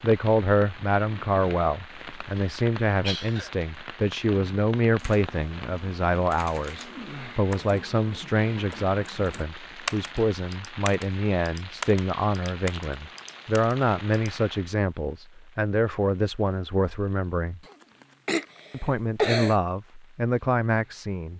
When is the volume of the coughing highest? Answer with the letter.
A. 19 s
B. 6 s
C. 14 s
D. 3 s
A.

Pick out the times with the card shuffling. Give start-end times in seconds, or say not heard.
not heard.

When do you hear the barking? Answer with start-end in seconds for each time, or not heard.
not heard.